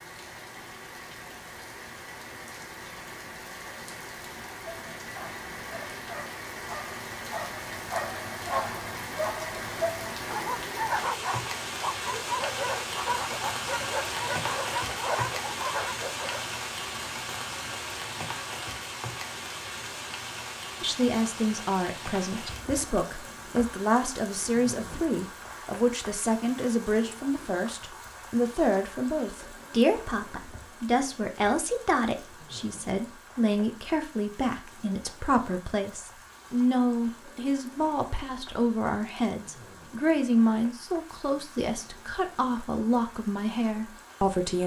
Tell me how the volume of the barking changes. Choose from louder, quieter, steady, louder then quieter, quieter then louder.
louder.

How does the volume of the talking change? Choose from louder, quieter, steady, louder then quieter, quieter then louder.
steady.